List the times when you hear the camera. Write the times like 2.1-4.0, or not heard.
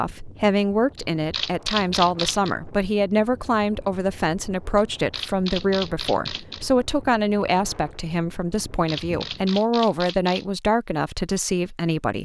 0.9-2.5, 4.8-6.7, 8.5-10.4.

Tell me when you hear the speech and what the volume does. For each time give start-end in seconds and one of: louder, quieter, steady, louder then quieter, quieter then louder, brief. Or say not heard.
0.0-12.2 steady.